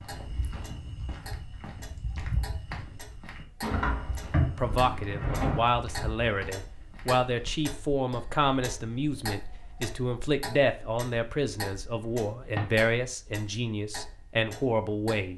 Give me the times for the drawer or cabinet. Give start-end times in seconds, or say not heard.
3.6-5.6, 12.1-12.7.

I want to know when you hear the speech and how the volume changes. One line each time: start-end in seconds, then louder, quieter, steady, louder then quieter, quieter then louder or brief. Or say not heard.
4.5-15.3 steady.